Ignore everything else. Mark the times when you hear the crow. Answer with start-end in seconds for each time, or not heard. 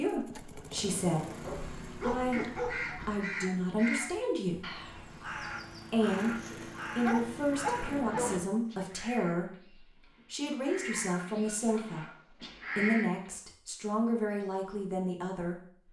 2.3-13.3.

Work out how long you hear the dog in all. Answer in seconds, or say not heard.
6 s.